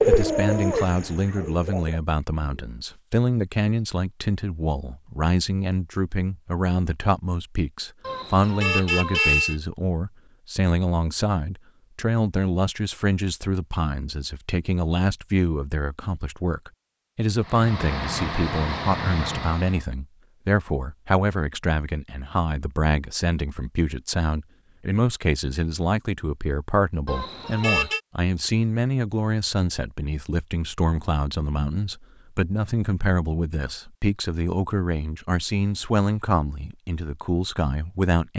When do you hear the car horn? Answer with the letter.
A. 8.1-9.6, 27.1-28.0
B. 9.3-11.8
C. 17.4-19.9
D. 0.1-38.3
A.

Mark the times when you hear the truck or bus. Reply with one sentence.
You can hear the truck or bus from 17.4 to 19.9 s.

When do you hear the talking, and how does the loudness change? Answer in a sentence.
You can hear the talking from 0.1 to 38.3 s, at a steady volume.